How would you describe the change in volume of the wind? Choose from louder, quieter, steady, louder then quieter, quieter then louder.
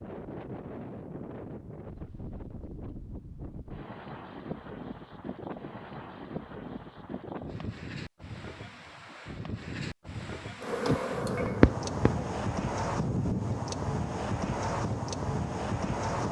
louder.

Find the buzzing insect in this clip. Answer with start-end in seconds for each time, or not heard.
10.7-12.3.